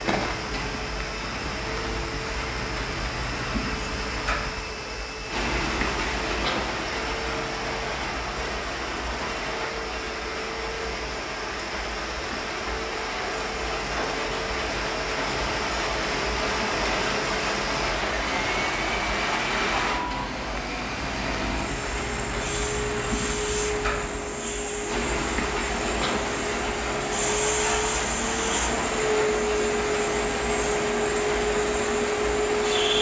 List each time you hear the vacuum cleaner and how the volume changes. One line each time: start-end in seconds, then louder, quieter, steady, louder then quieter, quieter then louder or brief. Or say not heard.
0.0-32.9 louder.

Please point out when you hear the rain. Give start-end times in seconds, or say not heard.
0.0-32.9.